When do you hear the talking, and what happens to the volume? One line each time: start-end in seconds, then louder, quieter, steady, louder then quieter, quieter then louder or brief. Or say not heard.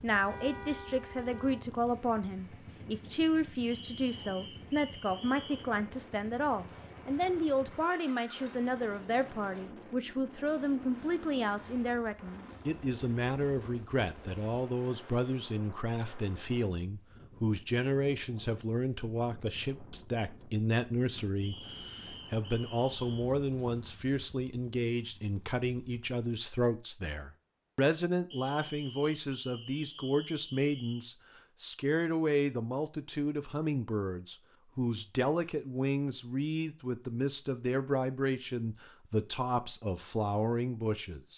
0.0-41.3 steady.